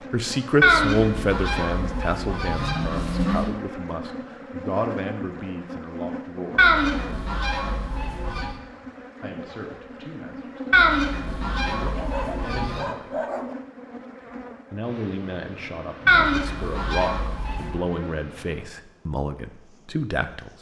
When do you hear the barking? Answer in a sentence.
The barking can be heard from 11.8 to 13.6 s.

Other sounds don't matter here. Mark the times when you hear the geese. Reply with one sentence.
You can hear the geese from 0.6 to 3.5 s, from 6.5 to 8.6 s, from 10.7 to 12.8 s and from 16.1 to 17.8 s.